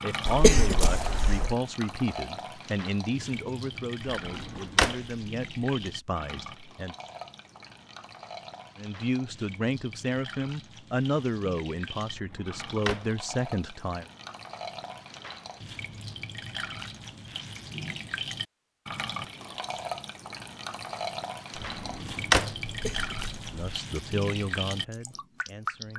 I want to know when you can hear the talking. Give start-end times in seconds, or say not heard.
0.0-7.0, 8.8-14.1, 23.5-25.9.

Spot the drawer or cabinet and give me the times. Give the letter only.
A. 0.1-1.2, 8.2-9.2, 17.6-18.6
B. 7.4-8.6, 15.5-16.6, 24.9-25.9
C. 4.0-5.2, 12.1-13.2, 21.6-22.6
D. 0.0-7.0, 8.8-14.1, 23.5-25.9
C.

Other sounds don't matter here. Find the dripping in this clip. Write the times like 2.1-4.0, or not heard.
0.0-25.9.